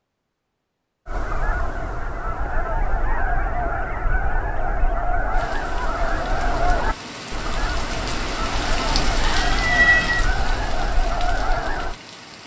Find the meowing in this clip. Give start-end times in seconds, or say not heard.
9.2-10.3.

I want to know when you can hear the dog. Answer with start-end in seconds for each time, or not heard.
not heard.